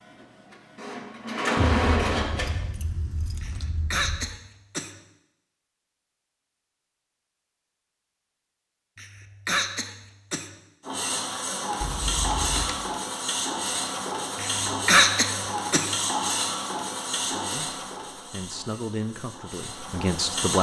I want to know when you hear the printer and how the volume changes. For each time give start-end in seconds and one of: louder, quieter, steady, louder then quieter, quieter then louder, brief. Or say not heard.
0.0-2.5 brief
10.8-20.5 quieter.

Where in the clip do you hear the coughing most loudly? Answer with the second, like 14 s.
15 s.